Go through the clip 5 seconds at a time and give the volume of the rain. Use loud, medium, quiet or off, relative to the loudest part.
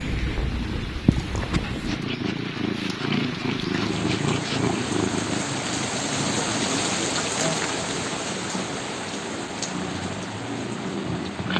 medium, loud, medium.